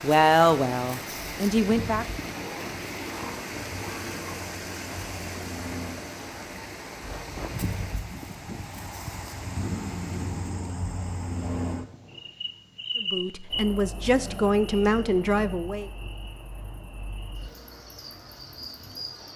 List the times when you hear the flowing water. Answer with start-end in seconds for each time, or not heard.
0.0-10.6.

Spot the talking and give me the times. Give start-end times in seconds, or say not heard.
0.0-2.0, 13.0-15.9.